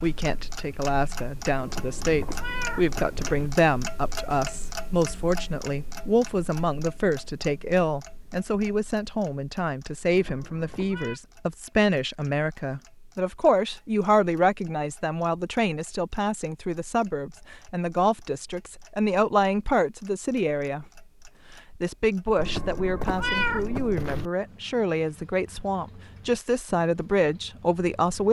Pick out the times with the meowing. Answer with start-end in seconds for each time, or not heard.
1.6-3.5, 10.1-11.2, 22.4-24.3.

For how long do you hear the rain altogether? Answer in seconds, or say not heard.
not heard.